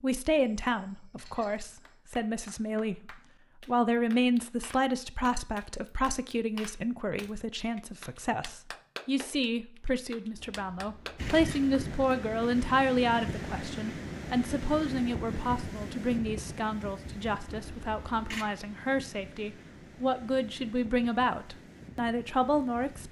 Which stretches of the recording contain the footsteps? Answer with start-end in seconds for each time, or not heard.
not heard.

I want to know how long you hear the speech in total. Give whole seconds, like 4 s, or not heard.
23 s.